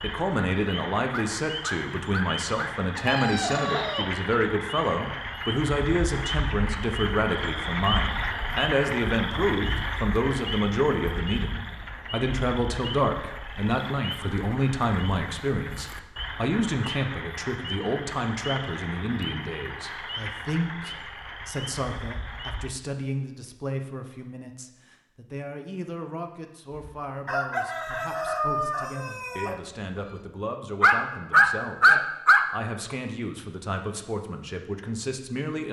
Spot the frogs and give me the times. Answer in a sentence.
The frogs can be heard from 0.0 to 22.7 s.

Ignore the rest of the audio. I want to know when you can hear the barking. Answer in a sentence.
The barking can be heard from 1.1 to 2.8 s and from 30.8 to 32.5 s.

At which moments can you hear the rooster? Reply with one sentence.
The rooster can be heard from 3.0 to 4.1 s and from 26.7 to 29.6 s.